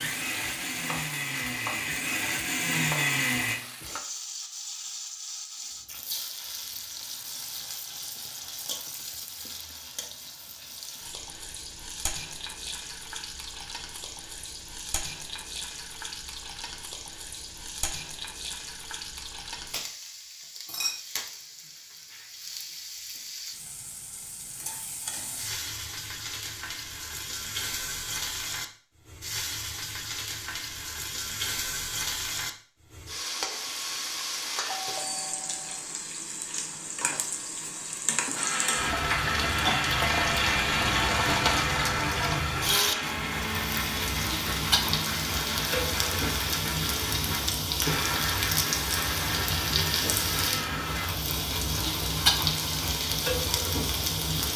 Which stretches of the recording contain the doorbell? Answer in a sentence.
The doorbell can be heard from 34.6 to 35.9 s.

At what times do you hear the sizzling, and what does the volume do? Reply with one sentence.
You can hear the sizzling from 0.0 to 54.5 s, getting louder.